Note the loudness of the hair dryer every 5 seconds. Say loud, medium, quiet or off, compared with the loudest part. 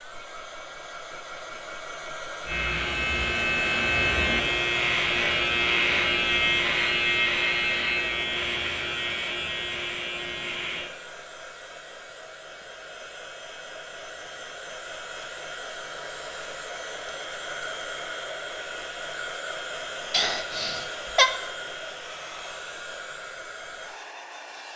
loud, loud, medium, loud, loud.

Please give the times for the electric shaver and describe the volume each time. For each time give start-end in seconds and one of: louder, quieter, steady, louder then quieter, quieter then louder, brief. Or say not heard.
2.5-10.9 quieter.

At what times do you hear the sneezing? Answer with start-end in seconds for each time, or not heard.
20.1-21.3.